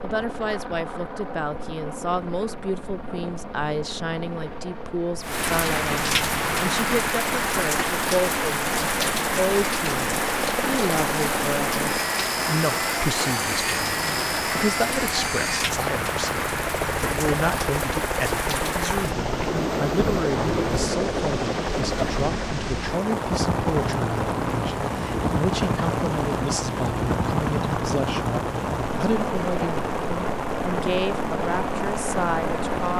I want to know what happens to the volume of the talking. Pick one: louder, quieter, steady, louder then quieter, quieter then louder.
steady.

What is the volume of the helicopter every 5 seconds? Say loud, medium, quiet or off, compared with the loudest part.
medium, medium, loud, loud, loud, loud, loud.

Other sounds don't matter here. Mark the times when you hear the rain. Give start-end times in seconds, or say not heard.
5.2-32.9.